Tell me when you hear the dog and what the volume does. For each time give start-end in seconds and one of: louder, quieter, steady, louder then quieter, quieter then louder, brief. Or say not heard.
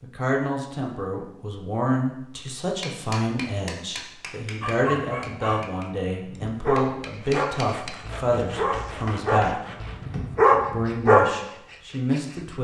4.6-11.2 louder.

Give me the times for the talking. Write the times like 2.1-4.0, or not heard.
0.0-9.6, 10.7-12.5.